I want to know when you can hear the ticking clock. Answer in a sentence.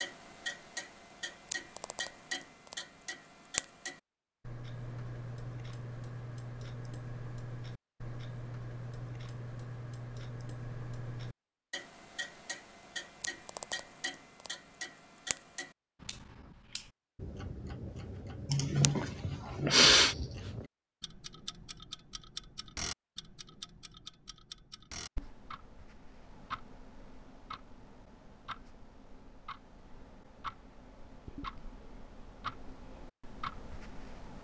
The ticking clock can be heard from 0.0 to 34.3 s.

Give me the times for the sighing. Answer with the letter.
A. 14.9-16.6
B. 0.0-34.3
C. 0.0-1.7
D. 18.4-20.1
D.